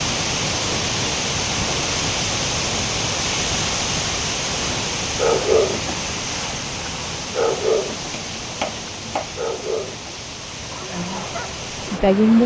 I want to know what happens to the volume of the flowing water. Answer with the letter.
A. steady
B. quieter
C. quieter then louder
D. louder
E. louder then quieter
B.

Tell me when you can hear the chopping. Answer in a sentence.
You can hear the chopping from 8.1 to 9.3 s.